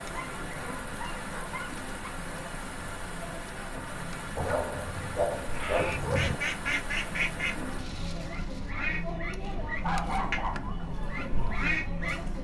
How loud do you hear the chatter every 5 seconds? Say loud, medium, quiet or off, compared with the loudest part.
medium, loud, loud.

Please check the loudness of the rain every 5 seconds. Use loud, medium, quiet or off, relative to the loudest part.
loud, loud, off.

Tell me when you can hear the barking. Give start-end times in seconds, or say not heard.
0.1-1.9, 4.3-6.4, 9.8-10.8.